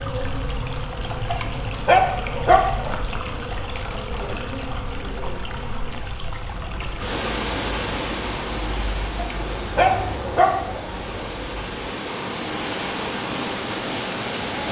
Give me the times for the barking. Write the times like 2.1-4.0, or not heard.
1.2-3.0, 9.2-11.2.